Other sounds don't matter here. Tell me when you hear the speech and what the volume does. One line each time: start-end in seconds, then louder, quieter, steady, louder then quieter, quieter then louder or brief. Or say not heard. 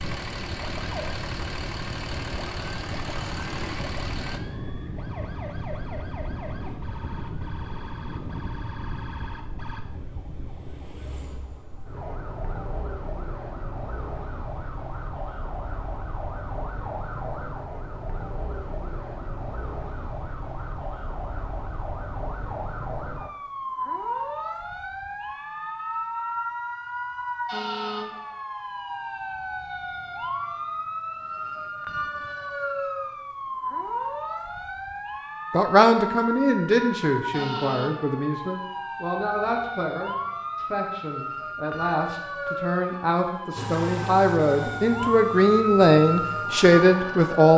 35.5-47.5 quieter then louder.